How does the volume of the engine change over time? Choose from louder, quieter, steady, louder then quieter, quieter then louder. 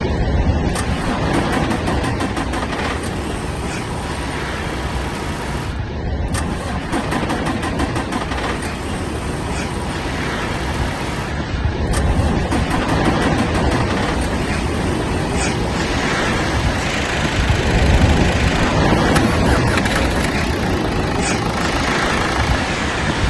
steady.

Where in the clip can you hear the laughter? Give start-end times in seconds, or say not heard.
not heard.